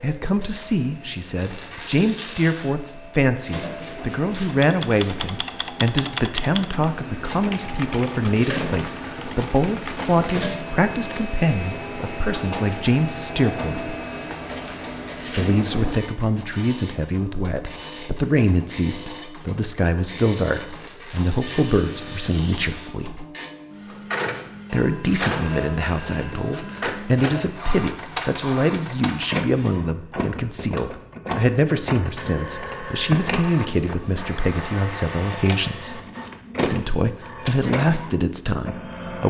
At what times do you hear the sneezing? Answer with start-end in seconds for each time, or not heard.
not heard.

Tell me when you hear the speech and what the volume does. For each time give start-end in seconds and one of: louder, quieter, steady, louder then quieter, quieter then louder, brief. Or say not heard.
0.0-13.9 steady
15.3-23.2 steady
24.7-36.0 steady
36.6-39.2 brief.